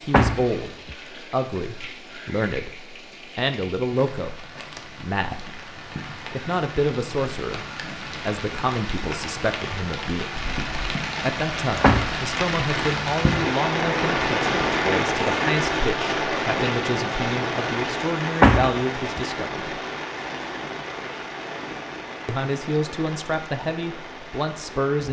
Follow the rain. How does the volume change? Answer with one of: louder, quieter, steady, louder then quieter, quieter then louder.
louder then quieter.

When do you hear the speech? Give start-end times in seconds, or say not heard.
0.0-10.3, 11.2-19.8, 22.2-25.0.